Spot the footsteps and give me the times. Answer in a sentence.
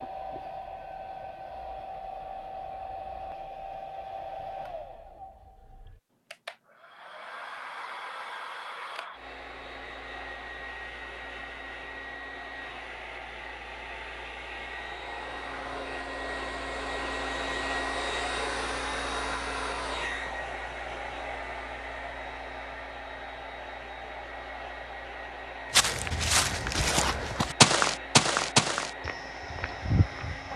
You can hear the footsteps from 25.7 to 30.5 s.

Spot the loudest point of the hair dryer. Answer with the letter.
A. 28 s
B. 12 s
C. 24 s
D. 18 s
D.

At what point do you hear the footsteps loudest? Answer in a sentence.
The volume of the footsteps peaks at 28 seconds.